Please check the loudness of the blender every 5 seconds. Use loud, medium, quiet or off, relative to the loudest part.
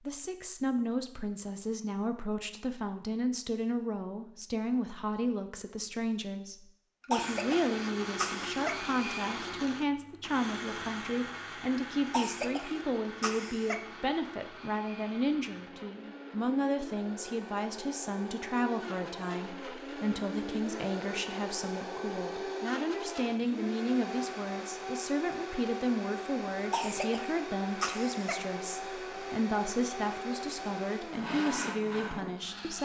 off, loud, medium, medium, loud, loud, loud.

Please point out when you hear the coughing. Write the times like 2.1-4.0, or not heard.
7.0-8.8, 12.1-13.8, 26.6-28.4.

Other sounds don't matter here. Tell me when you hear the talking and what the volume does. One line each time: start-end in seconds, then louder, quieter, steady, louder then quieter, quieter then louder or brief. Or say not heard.
0.1-32.8 steady.